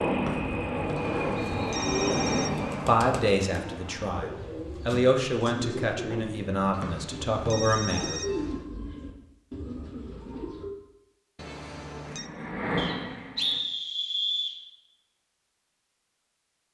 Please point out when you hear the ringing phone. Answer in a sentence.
You can hear the ringing phone from 0.9 to 2.9 s, from 6.7 to 8.7 s and from 11.3 to 12.3 s.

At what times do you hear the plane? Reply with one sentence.
The plane can be heard from 0.0 to 4.0 s and from 12.1 to 13.6 s.